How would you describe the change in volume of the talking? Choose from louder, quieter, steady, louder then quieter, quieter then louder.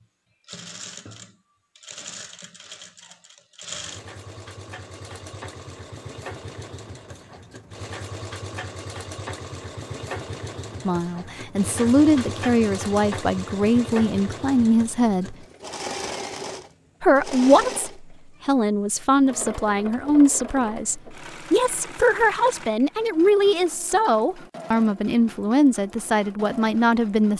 steady.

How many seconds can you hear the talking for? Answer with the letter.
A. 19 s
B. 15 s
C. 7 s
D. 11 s
B.